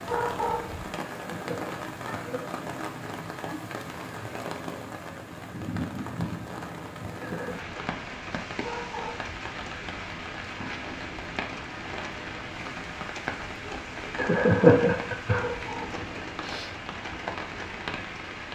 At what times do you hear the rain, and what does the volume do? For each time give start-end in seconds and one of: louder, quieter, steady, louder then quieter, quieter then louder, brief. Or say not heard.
0.0-18.5 steady.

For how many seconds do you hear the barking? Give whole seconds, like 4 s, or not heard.
2 s.